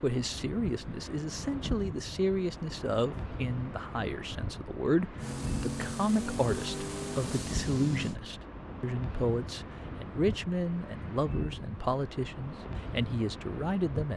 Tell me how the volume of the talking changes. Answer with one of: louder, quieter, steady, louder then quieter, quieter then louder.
steady.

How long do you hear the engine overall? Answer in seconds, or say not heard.
3 s.